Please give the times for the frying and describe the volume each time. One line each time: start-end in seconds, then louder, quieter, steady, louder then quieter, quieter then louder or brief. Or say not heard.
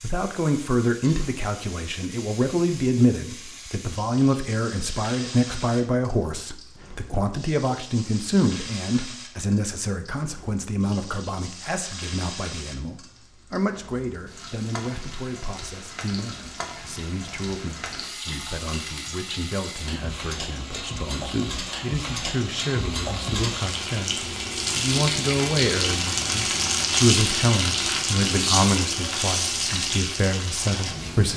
0.0-31.3 louder.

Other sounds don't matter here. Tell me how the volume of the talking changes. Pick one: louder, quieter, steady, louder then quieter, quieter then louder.
quieter then louder.